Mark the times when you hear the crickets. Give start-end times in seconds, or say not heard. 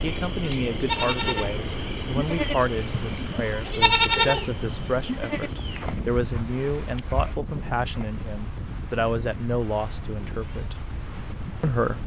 0.0-12.0.